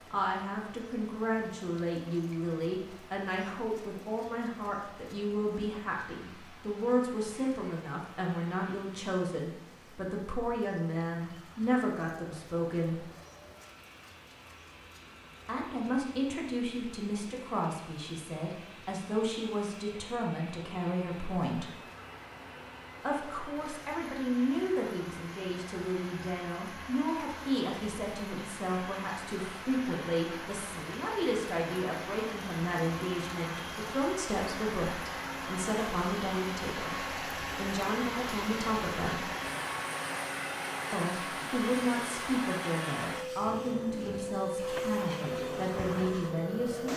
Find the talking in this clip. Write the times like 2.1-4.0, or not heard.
0.1-13.1, 15.4-21.8, 23.0-39.3, 40.9-46.9.